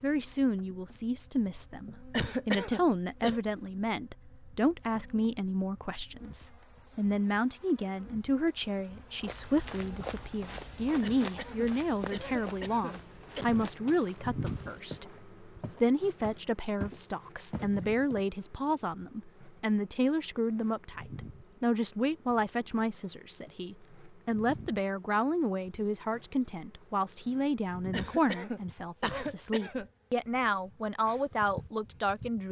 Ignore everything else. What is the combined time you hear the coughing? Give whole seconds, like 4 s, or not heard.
6 s.